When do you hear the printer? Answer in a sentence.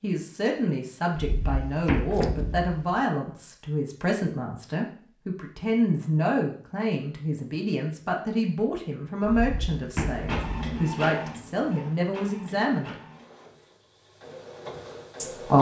The printer can be heard from 10.1 to 15.5 s.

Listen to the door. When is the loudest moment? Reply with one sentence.
The loudest moment of the door is at 2 seconds.